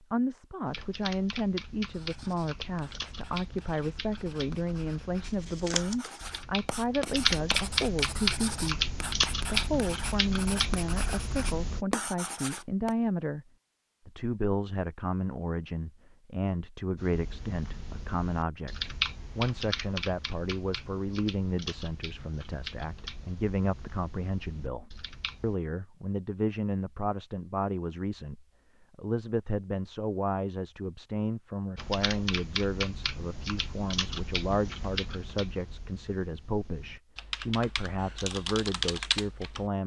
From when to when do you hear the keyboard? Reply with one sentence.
The keyboard can be heard from 0.7 to 11.8 s, from 16.9 to 25.6 s and from 31.8 to 39.7 s.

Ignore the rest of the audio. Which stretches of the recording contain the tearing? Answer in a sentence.
The tearing can be heard from 5.2 to 6.2 s.